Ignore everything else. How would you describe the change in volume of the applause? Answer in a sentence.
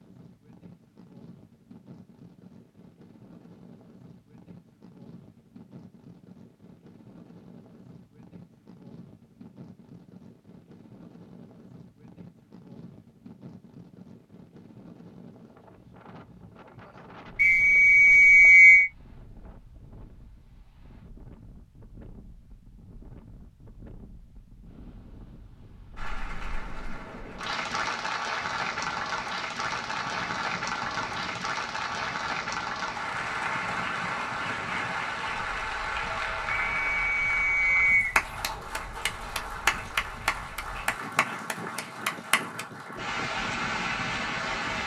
The loudness of the applause stays about the same.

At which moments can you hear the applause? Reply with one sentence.
The applause can be heard from 25.9 to 44.8 s.